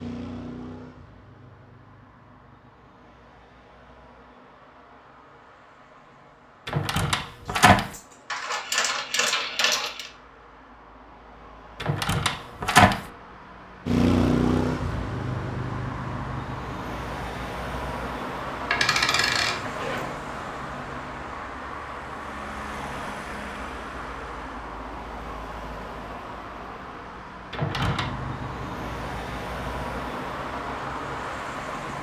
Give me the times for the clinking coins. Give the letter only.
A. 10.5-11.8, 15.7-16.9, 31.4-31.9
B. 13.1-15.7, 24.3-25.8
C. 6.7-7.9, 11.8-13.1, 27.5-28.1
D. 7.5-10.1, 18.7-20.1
D.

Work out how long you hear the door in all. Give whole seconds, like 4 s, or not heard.
3 s.